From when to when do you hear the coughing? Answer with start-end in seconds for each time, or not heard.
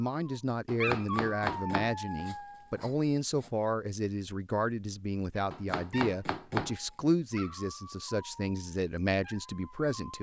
not heard.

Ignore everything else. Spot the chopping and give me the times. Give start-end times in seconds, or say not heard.
0.7-3.5, 5.5-6.8.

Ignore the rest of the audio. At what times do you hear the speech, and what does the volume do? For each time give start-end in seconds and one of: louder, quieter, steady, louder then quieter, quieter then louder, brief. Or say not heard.
0.0-10.1 steady.